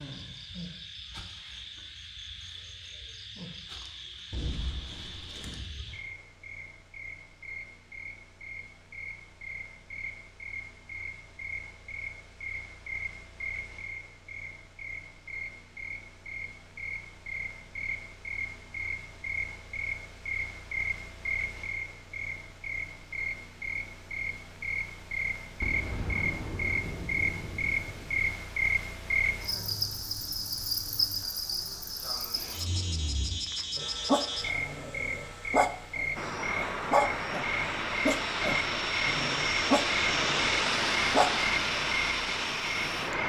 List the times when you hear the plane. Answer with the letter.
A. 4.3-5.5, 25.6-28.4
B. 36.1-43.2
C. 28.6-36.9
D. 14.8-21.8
B.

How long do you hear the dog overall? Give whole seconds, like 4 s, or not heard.
8 s.